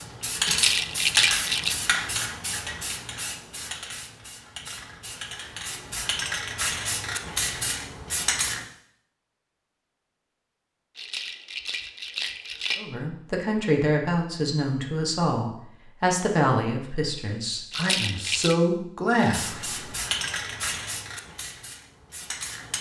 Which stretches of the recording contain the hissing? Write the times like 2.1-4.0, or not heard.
0.0-8.7, 19.2-22.7.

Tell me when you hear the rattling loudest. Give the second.
1 s.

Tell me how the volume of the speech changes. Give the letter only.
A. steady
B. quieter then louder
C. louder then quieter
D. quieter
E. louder
B.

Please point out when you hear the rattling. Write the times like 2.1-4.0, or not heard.
0.5-1.8, 10.9-12.8, 17.7-18.6.